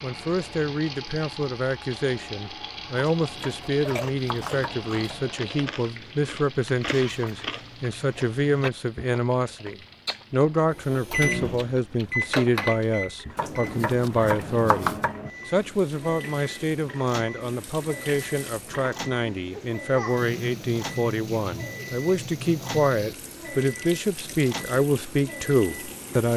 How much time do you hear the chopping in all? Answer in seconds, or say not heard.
4 s.